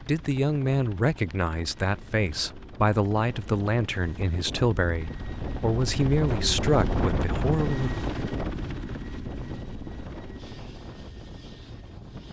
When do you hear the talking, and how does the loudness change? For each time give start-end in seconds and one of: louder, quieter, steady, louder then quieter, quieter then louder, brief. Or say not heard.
0.1-7.9 steady.